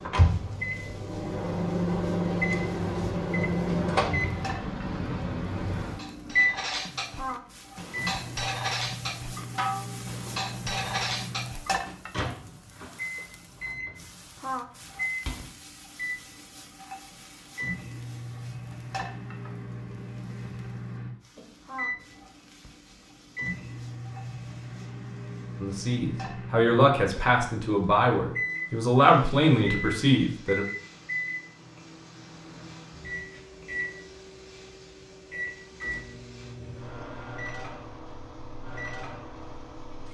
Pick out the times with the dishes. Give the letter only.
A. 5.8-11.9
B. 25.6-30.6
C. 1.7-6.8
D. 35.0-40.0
A.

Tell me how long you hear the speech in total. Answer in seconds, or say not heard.
5 s.